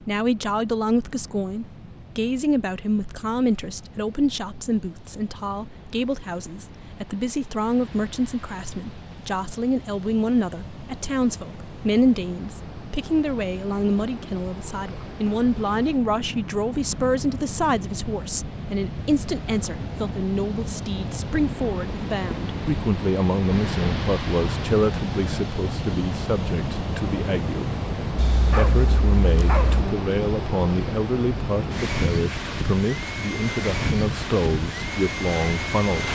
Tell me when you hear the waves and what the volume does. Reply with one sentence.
The waves can be heard from 0.0 to 36.1 s, getting louder.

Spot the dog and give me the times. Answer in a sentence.
The dog can be heard from 28.1 to 29.9 s.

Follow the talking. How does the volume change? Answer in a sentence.
The volume of the talking stays about the same.